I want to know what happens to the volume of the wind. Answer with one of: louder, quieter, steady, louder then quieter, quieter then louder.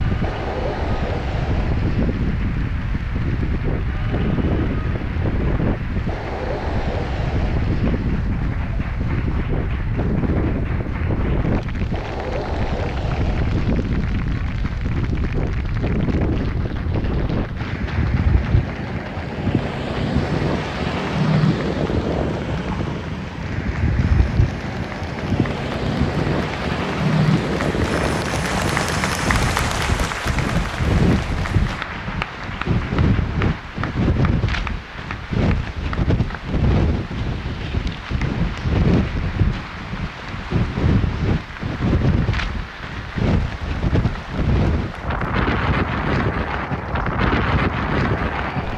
steady.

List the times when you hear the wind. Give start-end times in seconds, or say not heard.
0.0-48.7.